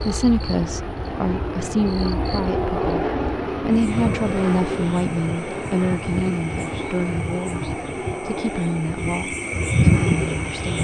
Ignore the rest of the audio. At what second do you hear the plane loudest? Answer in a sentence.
The volume of the plane peaks at 3 seconds.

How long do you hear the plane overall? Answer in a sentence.
You can hear the plane for 11 seconds altogether.